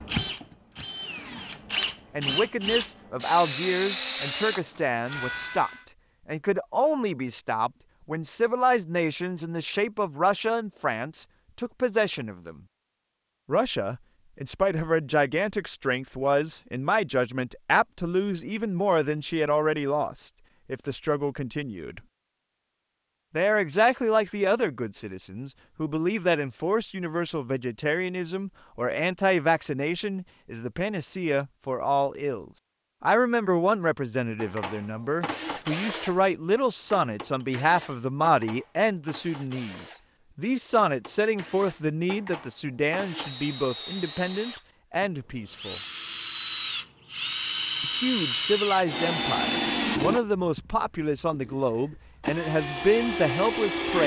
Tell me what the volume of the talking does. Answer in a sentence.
The volume of the talking stays about the same.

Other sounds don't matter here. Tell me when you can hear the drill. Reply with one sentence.
You can hear the drill from 0.0 to 5.8 s and from 34.4 to 54.0 s.